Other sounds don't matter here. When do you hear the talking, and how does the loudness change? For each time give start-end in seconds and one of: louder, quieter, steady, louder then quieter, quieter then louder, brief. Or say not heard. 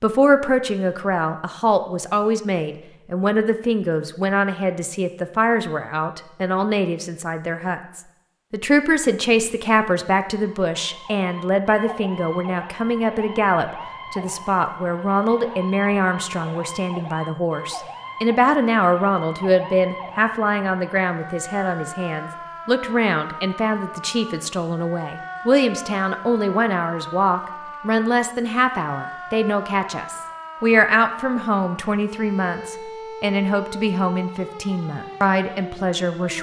0.0-36.3 steady.